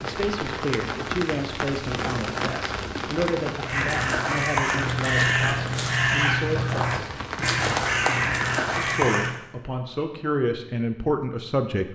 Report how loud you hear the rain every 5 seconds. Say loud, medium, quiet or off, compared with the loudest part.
loud, loud, off.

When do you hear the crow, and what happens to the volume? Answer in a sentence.
You can hear the crow from 3.6 to 9.3 s, at a steady volume.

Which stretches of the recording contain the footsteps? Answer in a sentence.
You can't hear the footsteps here.